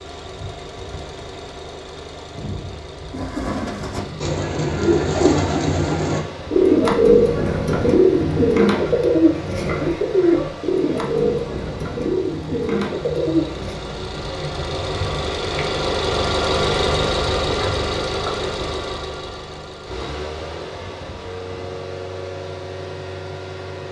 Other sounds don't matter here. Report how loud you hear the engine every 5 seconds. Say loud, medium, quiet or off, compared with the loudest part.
quiet, medium, medium, loud, medium.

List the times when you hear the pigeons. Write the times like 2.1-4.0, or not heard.
3.1-13.8.